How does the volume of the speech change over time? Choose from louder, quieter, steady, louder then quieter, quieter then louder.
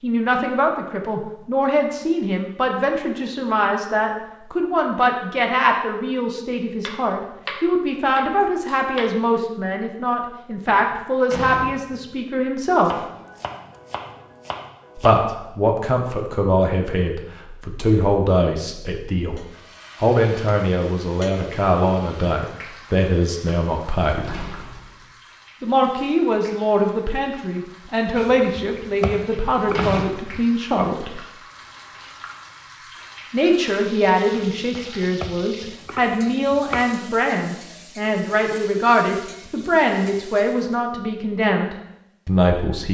steady.